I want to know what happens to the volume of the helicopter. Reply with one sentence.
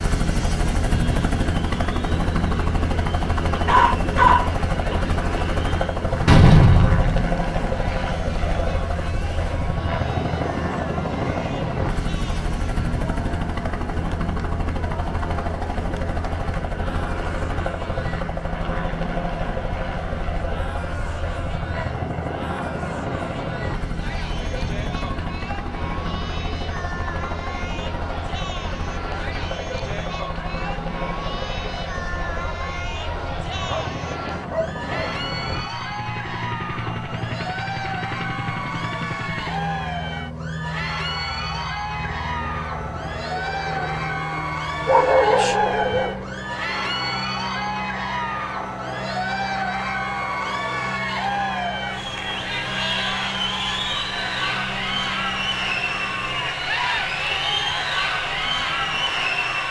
The volume of the helicopter goes down.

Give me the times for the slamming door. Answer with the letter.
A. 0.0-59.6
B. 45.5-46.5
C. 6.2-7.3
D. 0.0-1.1
C.